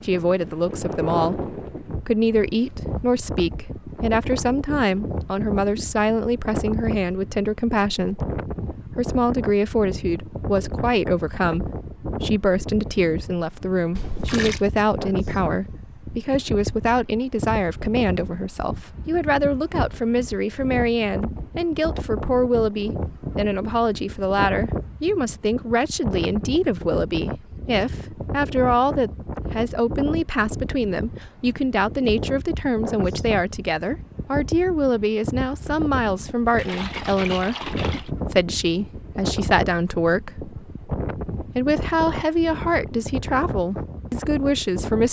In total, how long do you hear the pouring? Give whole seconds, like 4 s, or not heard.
2 s.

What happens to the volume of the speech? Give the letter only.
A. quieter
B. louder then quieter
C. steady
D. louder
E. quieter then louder
C.